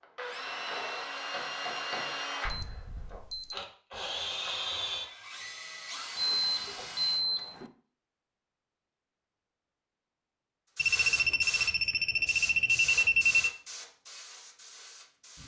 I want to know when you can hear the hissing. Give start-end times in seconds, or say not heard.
10.8-15.4.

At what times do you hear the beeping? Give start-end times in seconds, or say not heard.
2.5-3.5, 6.2-7.7, 10.8-13.5.